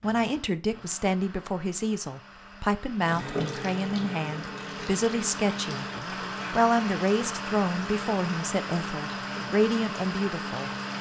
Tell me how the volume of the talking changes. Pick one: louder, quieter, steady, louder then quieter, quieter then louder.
steady.